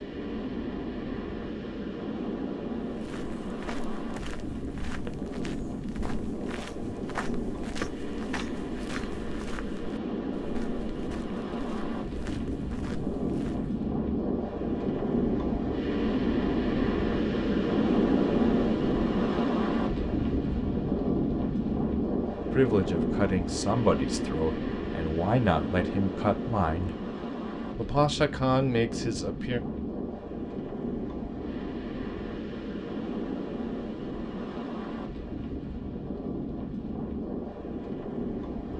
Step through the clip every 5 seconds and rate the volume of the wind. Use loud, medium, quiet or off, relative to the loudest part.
medium, medium, medium, loud, loud, medium, medium, medium.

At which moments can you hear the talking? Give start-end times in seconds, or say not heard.
22.5-26.9, 27.8-29.6.